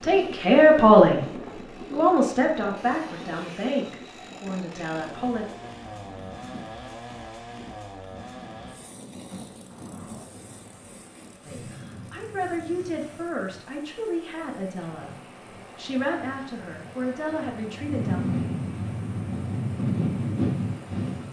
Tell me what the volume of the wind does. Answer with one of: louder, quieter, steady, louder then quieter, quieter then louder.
quieter then louder.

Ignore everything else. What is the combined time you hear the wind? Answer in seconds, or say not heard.
21 s.